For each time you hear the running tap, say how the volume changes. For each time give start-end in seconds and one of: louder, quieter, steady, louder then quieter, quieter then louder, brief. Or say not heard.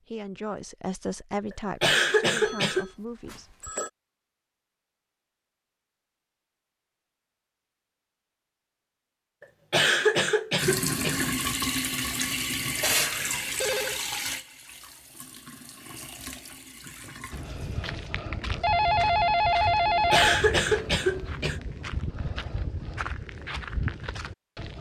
10.6-18.1 quieter.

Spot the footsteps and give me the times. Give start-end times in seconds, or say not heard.
17.3-24.7.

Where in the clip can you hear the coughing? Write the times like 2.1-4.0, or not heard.
1.8-2.9, 9.7-11.3, 20.1-21.6.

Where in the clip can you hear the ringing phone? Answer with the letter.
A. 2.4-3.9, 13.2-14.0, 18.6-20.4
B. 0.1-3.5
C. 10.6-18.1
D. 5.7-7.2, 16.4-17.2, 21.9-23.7
A.